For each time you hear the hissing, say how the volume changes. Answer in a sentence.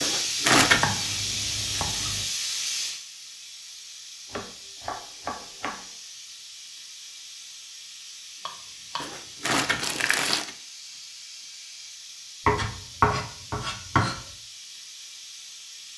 The hissing can be heard from 0.0 to 15.9 s, getting quieter.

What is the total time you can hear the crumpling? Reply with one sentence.
You can hear the crumpling for 2 seconds altogether.